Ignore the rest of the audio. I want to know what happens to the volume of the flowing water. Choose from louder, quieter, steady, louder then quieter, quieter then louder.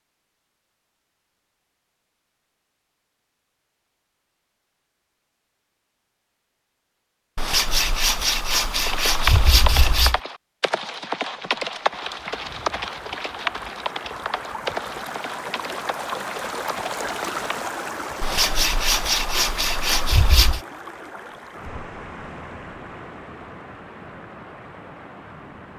louder then quieter.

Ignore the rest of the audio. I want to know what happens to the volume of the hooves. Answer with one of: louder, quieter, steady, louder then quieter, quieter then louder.
quieter.